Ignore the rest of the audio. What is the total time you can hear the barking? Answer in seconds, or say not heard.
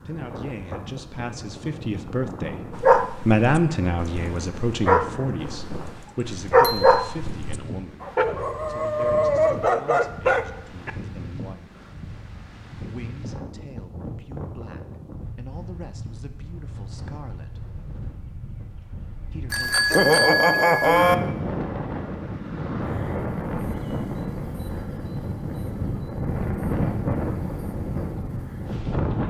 8 s.